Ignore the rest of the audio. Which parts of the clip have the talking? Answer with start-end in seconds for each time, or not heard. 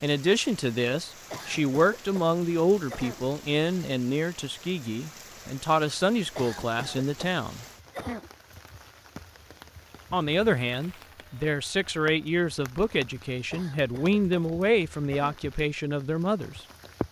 0.0-7.7, 10.1-16.6.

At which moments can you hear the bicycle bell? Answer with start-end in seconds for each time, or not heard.
not heard.